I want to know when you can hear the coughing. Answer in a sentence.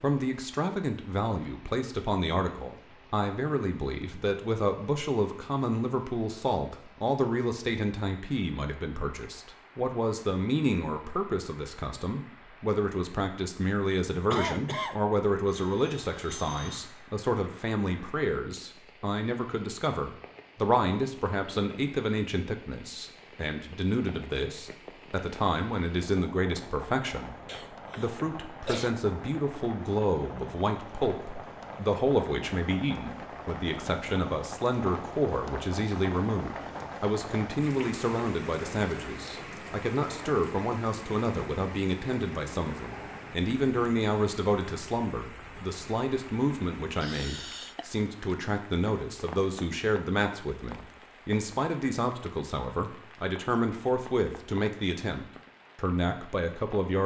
You can hear the coughing from 14.3 to 15.1 s, from 27.4 to 28.9 s and from 47.0 to 47.9 s.